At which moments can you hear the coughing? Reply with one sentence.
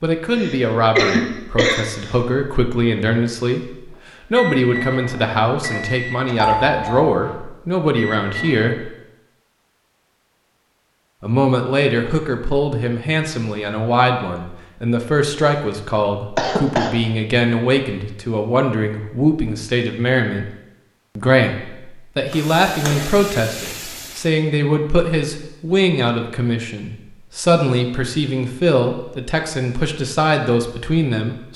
The coughing can be heard from 0.3 to 2.1 s and from 16.4 to 16.9 s.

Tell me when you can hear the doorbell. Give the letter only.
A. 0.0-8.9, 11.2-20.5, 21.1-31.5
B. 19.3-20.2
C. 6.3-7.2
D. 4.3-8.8
C.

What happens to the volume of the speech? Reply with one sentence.
The volume of the speech stays about the same.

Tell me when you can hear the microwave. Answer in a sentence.
The microwave can be heard from 4.3 to 8.8 s.